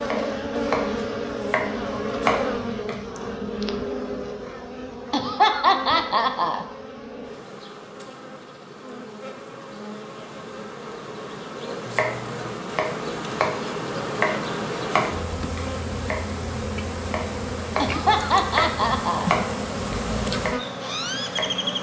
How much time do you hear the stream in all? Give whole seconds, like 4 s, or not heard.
not heard.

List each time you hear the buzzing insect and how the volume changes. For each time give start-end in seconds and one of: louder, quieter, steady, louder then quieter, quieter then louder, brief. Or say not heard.
0.0-21.7 quieter then louder.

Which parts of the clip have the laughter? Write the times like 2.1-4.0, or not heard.
5.1-6.7, 17.8-19.3.